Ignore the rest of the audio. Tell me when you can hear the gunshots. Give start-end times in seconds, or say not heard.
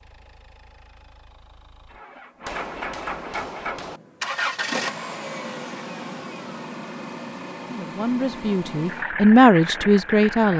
2.4-4.0.